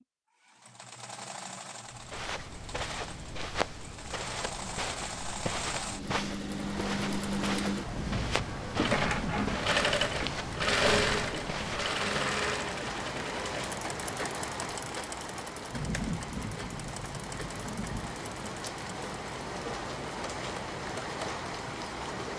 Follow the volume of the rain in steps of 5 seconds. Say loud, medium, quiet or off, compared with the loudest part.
off, loud, loud, loud, loud.